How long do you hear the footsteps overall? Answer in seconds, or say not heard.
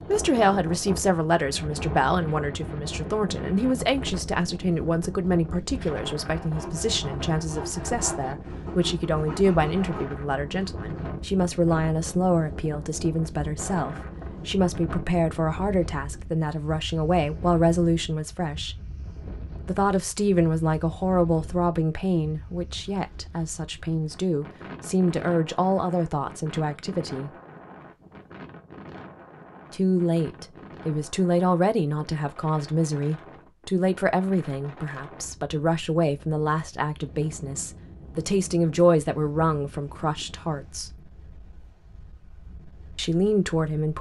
not heard.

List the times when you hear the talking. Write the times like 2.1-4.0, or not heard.
0.0-18.8, 19.6-27.3, 29.7-40.9, 43.0-43.9.